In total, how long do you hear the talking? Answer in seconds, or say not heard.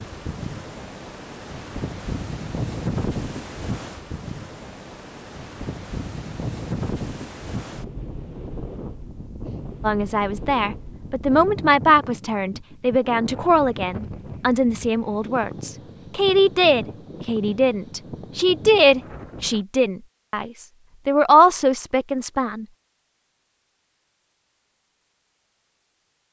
13 s.